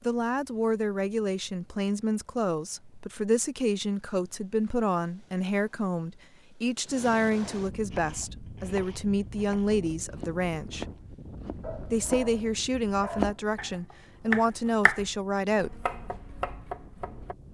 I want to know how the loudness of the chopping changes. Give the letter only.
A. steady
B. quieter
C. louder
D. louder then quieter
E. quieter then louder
D.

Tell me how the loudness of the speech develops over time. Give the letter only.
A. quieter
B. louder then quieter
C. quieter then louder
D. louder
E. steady
E.